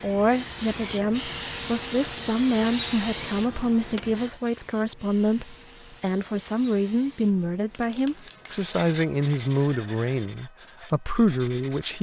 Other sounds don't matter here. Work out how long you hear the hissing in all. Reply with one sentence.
You can hear the hissing for 10 seconds altogether.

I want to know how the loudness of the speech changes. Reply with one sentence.
The volume of the speech stays about the same.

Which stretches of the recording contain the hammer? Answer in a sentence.
You can't hear the hammer here.